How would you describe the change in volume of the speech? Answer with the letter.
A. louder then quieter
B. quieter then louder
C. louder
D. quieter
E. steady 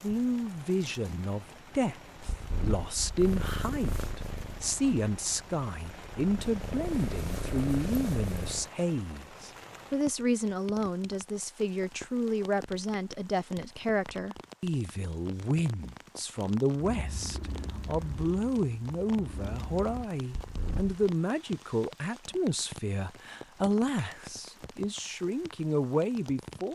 E.